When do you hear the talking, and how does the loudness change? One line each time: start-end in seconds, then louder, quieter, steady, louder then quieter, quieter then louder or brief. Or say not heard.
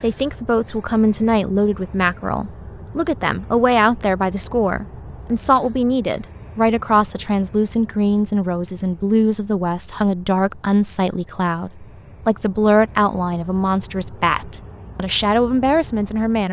0.0-16.4 steady.